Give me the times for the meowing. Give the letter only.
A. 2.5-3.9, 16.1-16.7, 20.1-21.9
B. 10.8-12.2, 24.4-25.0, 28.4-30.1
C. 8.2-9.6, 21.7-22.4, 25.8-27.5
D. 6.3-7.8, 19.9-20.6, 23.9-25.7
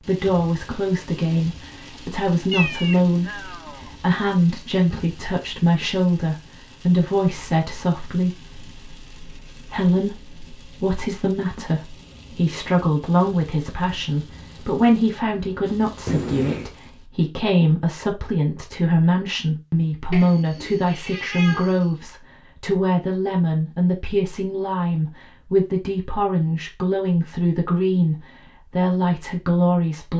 A.